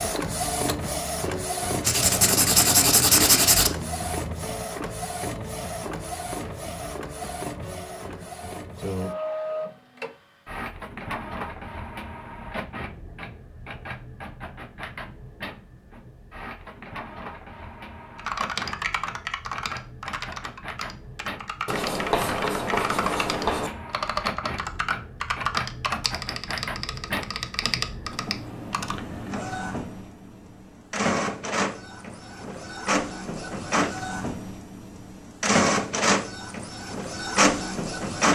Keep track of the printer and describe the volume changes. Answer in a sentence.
The volume of the printer goes down, then up.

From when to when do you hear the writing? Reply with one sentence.
The writing can be heard from 1.8 to 3.7 s and from 21.6 to 23.7 s.